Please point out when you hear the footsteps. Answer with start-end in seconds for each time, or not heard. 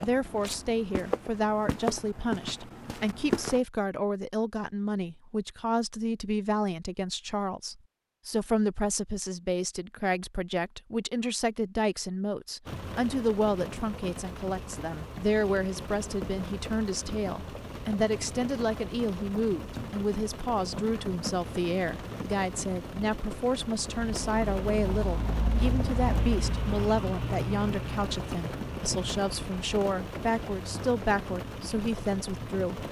0.0-3.6.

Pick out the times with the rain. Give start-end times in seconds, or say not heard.
12.7-32.8.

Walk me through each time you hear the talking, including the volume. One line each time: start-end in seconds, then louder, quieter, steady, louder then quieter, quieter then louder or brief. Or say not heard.
0.0-32.8 steady.